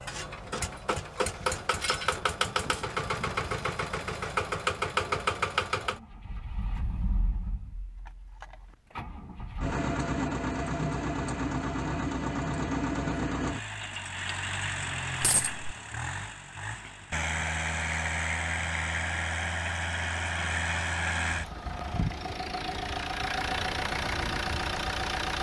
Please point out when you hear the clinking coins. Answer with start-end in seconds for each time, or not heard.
15.2-15.7.